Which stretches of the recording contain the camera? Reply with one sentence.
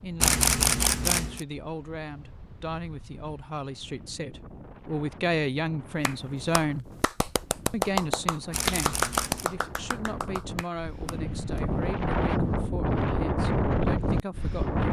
The camera can be heard from 0.2 to 1.4 s and from 8.5 to 9.4 s.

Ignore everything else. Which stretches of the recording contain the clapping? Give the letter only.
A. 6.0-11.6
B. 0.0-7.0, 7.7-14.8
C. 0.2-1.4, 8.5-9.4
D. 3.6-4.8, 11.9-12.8
A.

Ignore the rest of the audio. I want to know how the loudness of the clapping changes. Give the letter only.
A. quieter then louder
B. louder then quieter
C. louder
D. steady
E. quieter
B.